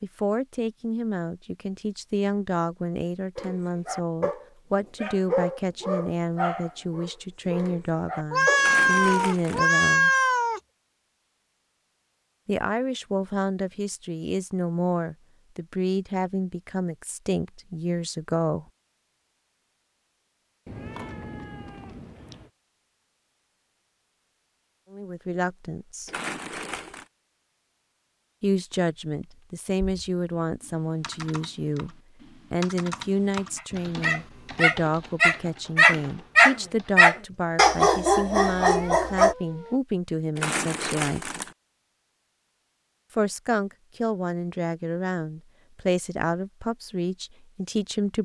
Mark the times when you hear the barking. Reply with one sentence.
You can hear the barking from 3.4 to 8.7 s and from 33.5 to 39.4 s.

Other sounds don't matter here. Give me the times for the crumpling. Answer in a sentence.
You can hear the crumpling from 8.6 to 9.7 s, from 26.1 to 27.1 s and from 40.4 to 41.5 s.